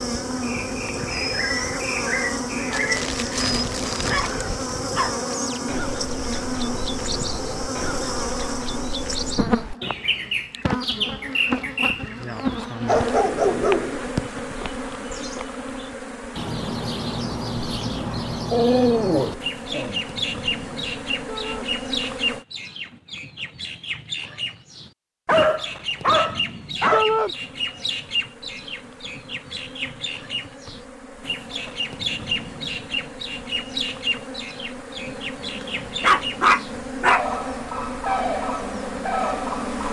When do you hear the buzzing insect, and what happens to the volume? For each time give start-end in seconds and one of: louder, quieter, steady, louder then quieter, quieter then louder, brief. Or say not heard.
0.0-22.4 quieter
27.0-39.8 louder.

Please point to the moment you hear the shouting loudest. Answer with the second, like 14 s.
27 s.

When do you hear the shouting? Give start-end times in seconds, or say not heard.
2.6-3.1, 21.2-21.7, 26.9-27.4.